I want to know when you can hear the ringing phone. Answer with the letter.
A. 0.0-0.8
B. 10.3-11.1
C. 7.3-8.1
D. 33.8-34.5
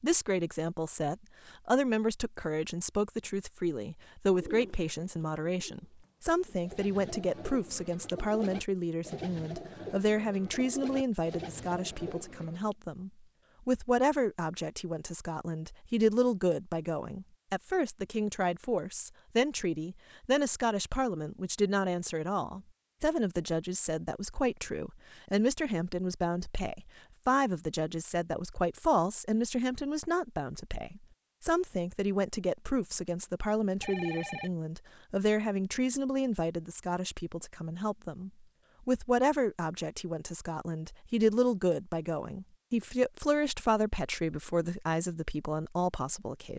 D.